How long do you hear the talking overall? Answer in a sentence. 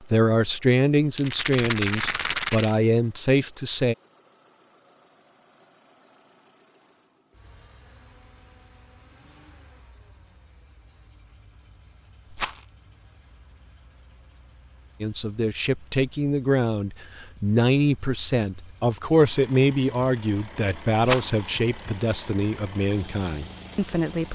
You can hear the talking for 13 seconds altogether.